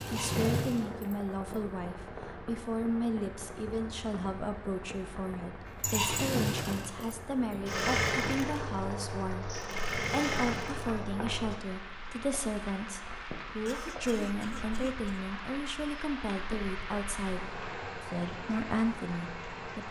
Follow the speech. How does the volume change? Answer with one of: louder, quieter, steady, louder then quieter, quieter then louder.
steady.